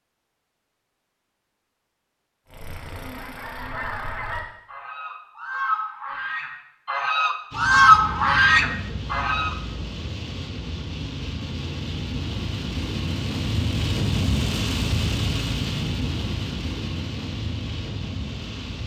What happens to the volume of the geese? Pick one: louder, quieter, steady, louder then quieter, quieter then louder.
louder.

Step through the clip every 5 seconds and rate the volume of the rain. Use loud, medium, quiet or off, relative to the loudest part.
off, medium, loud, loud.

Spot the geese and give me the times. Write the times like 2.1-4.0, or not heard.
2.5-9.6.